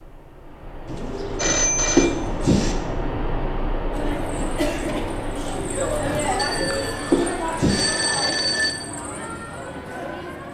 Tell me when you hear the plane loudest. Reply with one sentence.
The volume of the plane peaks at 3 seconds.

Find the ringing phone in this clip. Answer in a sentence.
You can hear the ringing phone from 1.4 to 2.1 s and from 6.3 to 8.9 s.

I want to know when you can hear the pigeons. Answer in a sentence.
You can hear the pigeons from 0.8 to 2.8 s and from 6.2 to 7.9 s.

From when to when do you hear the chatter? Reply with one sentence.
The chatter can be heard from 3.9 to 10.4 s.